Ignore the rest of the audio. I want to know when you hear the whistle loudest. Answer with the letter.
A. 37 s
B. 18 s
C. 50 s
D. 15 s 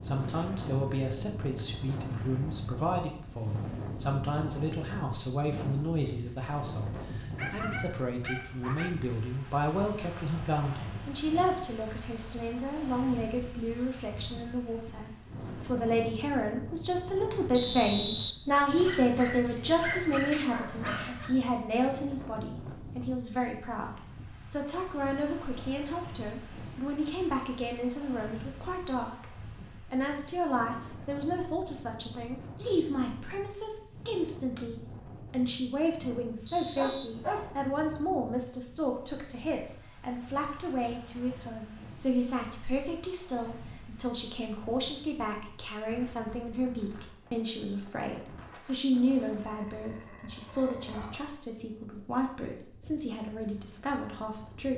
B.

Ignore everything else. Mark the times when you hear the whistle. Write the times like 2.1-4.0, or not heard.
17.5-19.0, 36.5-37.1.